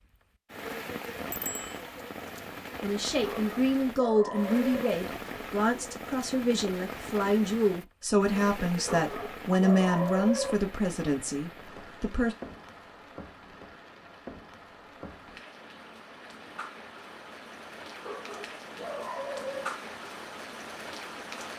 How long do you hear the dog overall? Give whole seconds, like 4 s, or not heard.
5 s.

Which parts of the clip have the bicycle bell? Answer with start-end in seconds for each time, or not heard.
1.3-1.8.